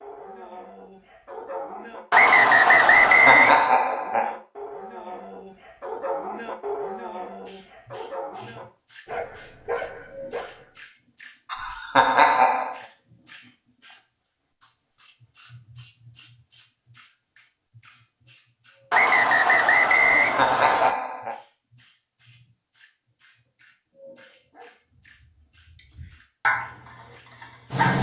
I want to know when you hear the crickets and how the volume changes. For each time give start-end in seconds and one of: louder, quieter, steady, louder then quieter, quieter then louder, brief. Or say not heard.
7.5-27.9 quieter.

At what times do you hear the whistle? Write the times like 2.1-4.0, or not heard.
2.1-3.7, 18.9-20.9.